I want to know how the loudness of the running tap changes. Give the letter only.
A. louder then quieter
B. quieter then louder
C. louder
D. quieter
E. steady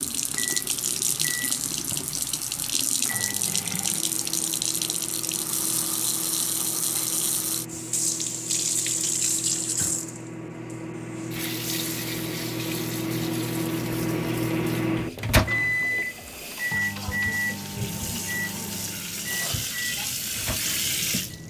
B.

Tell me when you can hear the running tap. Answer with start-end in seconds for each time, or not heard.
0.0-21.4.